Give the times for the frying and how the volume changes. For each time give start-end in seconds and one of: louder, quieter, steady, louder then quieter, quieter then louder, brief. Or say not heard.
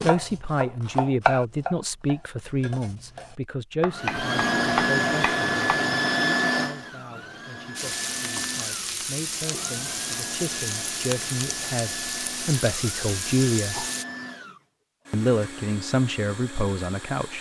7.8-14.1 steady.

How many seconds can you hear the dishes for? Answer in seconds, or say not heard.
not heard.